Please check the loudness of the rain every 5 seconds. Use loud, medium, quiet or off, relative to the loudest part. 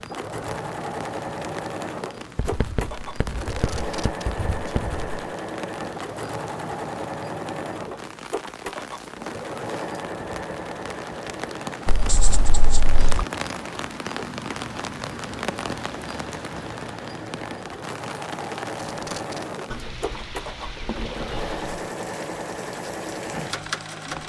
medium, medium, loud, loud, medium.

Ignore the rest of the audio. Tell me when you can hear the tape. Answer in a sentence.
You can hear the tape from 3.4 to 4.8 s and from 18.8 to 19.4 s.